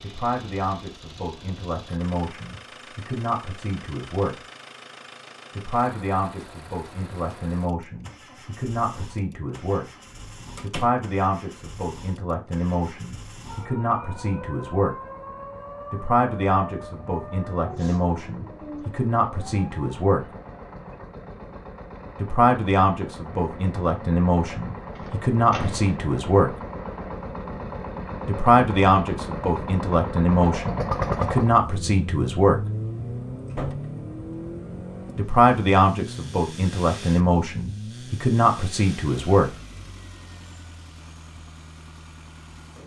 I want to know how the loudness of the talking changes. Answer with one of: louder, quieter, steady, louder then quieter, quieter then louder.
louder.